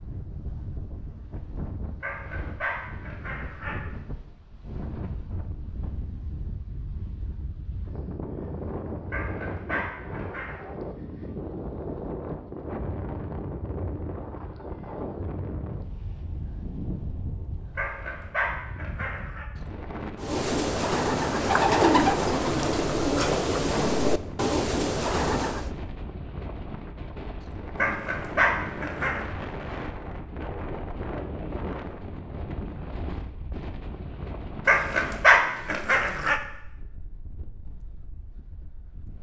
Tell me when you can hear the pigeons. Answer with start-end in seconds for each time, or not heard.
20.2-25.7.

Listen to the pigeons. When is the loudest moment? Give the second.
22 s.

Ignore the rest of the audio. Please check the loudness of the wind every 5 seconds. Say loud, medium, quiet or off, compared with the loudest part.
medium, loud, loud, loud, loud, loud, loud, quiet.